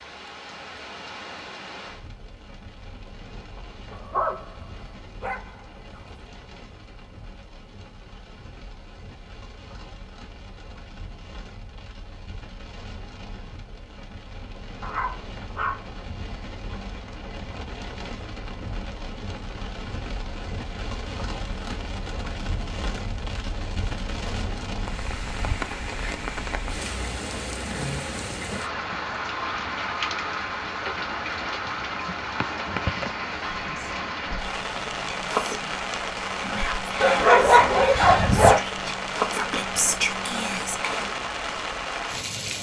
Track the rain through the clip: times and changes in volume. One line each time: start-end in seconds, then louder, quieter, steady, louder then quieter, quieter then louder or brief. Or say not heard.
0.0-42.5 louder.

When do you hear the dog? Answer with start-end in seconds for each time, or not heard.
3.9-6.0, 14.8-15.8, 37.0-38.6.